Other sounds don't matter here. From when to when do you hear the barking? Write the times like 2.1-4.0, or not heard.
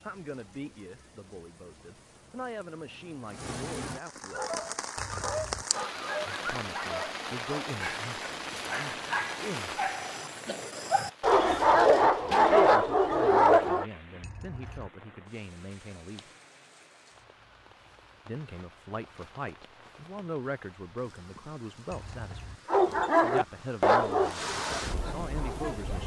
4.3-13.8, 22.6-26.0.